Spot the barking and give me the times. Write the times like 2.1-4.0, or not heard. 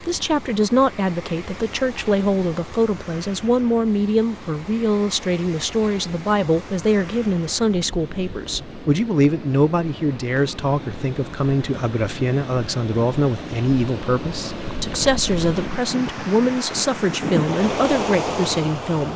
not heard.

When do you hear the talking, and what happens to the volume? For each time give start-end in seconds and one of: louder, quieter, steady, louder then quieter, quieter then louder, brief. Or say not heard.
0.0-19.1 steady.